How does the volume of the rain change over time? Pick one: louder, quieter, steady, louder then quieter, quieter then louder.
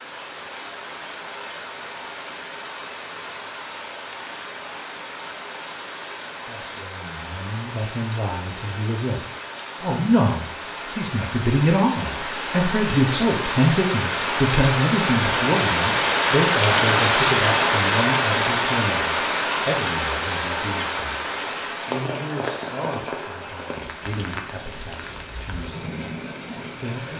louder then quieter.